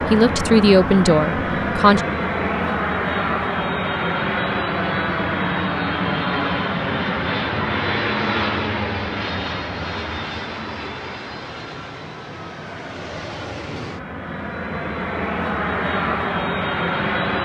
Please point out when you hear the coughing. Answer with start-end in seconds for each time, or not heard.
not heard.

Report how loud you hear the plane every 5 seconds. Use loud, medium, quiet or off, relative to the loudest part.
loud, loud, medium, loud.